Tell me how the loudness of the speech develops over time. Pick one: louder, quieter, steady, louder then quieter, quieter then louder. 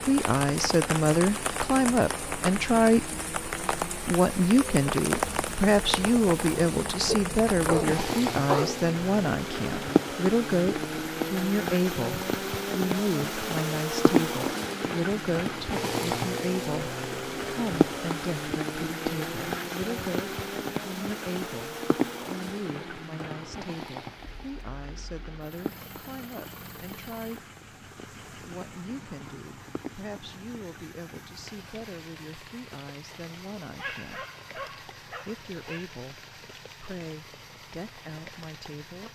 quieter.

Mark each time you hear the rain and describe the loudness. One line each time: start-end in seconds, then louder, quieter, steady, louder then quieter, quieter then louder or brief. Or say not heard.
0.0-39.0 quieter.